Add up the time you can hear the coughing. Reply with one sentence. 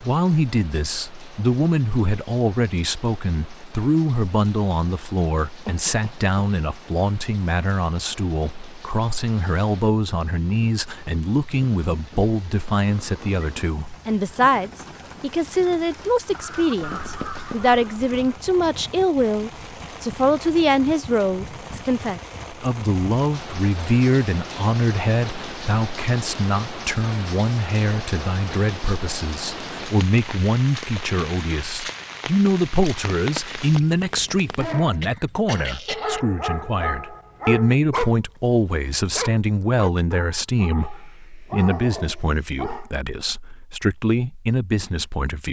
You can hear the coughing for 2 seconds altogether.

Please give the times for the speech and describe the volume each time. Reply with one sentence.
The speech can be heard from 0.0 to 45.4 s, at a steady volume.